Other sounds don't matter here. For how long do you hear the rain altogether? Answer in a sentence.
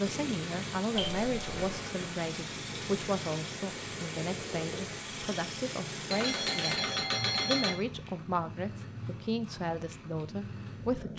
The rain can be heard for 7 seconds in total.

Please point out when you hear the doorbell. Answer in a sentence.
The doorbell can be heard from 0.9 to 1.6 s and from 6.1 to 7.7 s.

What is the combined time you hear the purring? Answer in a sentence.
You can hear the purring for 11 seconds altogether.